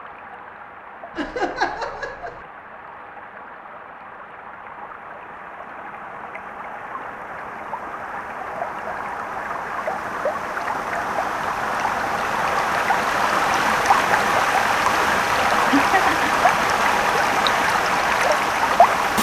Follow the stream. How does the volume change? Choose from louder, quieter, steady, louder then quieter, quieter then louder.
louder.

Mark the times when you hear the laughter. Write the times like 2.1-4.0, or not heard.
1.1-2.4, 15.7-16.3.